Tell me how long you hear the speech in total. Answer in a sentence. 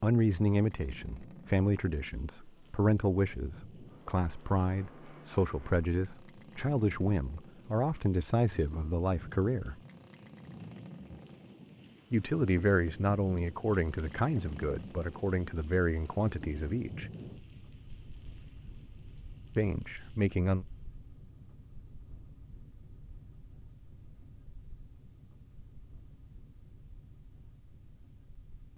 You can hear the speech for 16 seconds altogether.